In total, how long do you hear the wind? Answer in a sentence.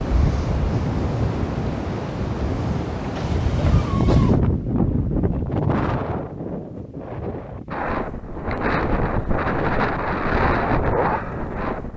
You can hear the wind for 12 seconds altogether.